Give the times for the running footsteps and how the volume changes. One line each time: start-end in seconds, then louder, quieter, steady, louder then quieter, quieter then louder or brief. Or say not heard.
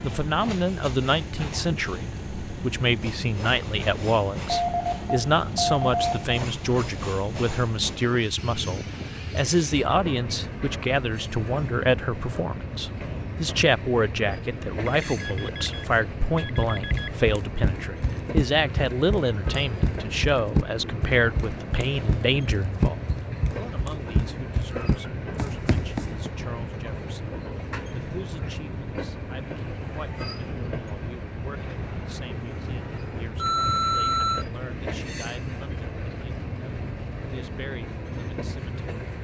16.6-26.3 steady.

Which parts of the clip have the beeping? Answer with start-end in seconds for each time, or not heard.
4.5-6.3, 14.8-17.3, 33.4-34.5.